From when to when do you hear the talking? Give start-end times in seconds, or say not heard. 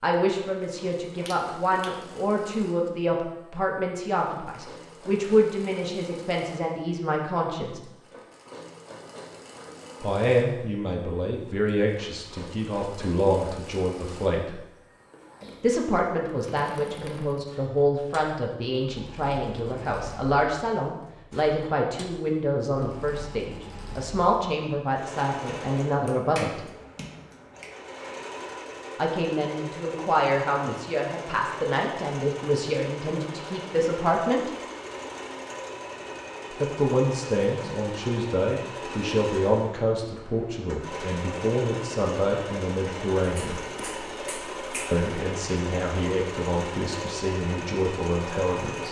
0.0-7.8, 10.0-14.6, 15.6-26.6, 28.9-34.5, 36.5-43.6, 44.9-48.8.